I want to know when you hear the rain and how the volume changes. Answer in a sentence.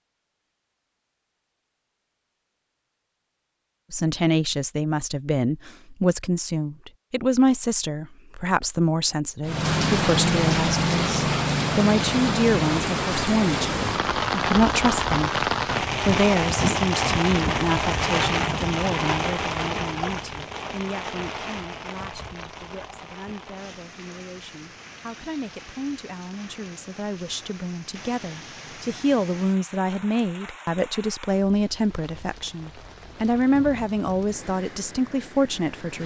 You can hear the rain from 9.4 to 36.0 s, getting quieter.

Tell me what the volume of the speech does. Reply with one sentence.
The volume of the speech goes down, then up.